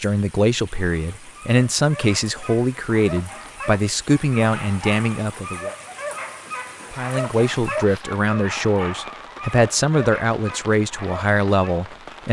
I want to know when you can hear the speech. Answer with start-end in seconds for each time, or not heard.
0.0-5.8, 6.9-12.2.